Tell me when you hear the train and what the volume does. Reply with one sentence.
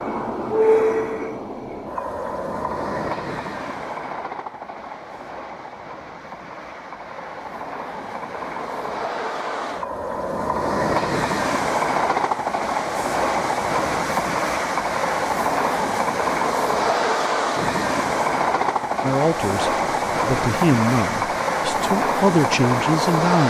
The train can be heard from 0.0 to 23.4 s, getting quieter then louder.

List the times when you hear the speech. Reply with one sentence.
You can hear the speech from 19.0 to 23.4 s.